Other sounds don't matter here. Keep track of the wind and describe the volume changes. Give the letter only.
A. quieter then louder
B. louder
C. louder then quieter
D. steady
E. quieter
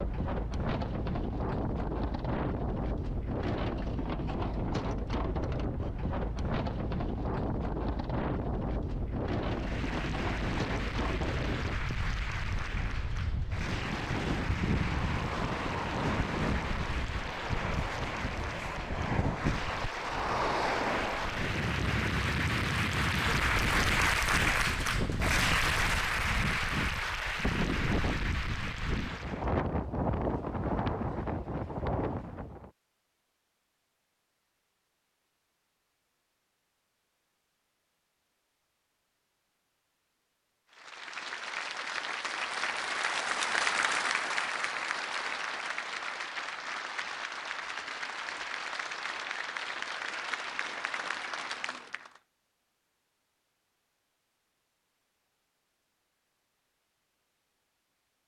D.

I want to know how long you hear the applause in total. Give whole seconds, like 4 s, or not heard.
32 s.